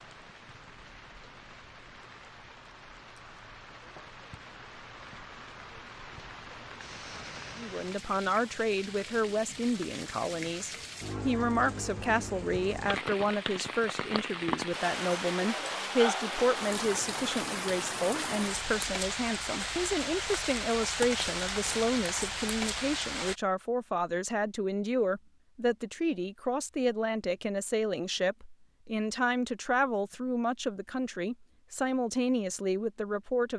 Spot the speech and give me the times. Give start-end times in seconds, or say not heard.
7.5-33.5.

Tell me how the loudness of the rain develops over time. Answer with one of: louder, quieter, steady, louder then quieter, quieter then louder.
louder.